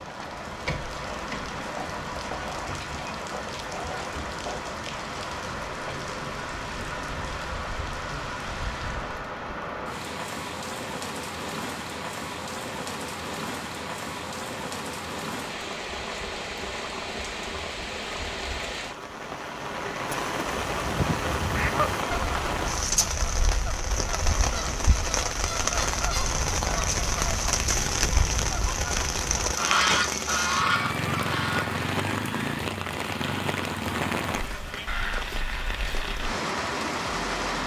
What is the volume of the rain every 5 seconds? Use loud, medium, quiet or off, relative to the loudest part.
medium, medium, medium, medium, loud, loud, loud, loud.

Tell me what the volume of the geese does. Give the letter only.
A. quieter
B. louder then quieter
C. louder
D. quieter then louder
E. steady
D.